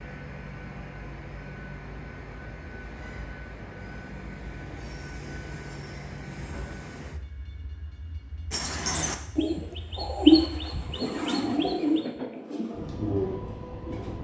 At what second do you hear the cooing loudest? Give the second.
10 s.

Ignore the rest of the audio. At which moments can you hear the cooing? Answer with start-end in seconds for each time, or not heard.
8.5-14.1.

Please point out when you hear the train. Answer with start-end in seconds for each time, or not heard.
0.0-14.1.